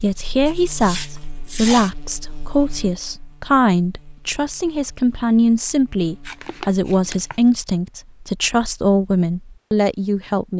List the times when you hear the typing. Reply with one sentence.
You can't hear the typing here.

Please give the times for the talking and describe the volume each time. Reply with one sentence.
The talking can be heard from 0.0 to 10.5 s, at a steady volume.